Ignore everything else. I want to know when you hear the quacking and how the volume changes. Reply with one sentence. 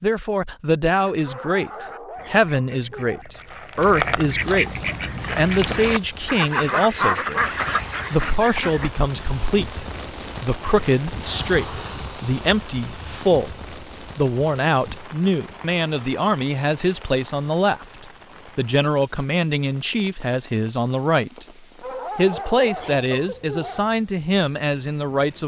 You can hear the quacking from 1.1 to 8.9 s, getting louder.